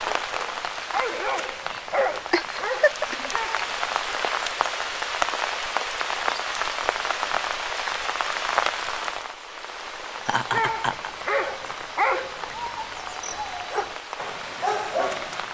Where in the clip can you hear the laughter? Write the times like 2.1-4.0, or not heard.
2.3-3.3, 10.2-11.1.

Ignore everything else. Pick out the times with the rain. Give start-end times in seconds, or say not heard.
0.0-15.4.